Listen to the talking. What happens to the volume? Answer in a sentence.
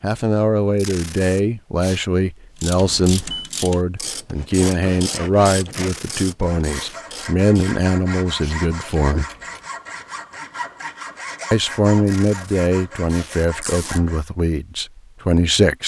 The volume of the talking stays about the same.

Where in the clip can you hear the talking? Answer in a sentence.
You can hear the talking from 0.0 to 9.2 s and from 11.5 to 15.8 s.